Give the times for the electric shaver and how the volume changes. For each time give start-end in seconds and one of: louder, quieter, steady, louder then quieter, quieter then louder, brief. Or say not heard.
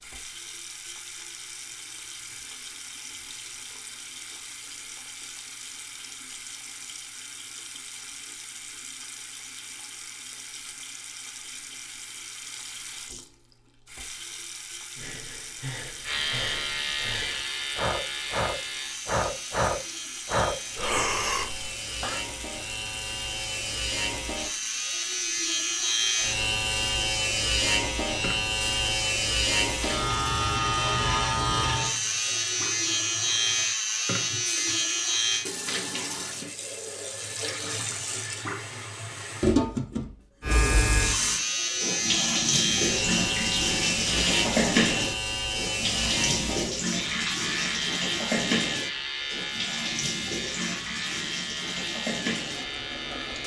16.0-35.5 louder
40.4-53.4 quieter.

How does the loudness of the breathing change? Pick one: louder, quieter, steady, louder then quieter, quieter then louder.
louder.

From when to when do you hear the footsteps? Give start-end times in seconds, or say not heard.
not heard.